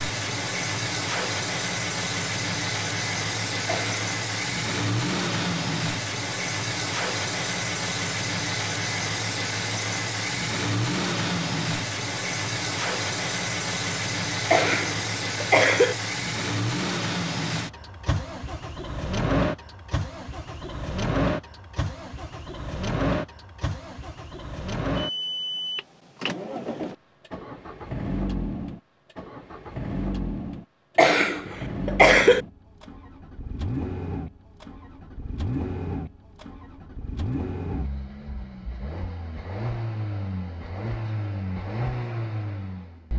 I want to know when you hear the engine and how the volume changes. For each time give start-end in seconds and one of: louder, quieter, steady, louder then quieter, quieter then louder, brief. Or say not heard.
0.0-43.1 quieter.